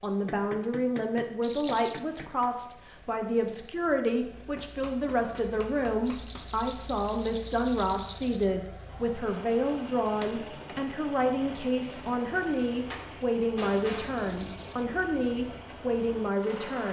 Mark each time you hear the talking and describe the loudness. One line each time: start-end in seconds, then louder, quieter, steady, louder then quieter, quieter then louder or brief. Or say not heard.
0.0-16.8 steady.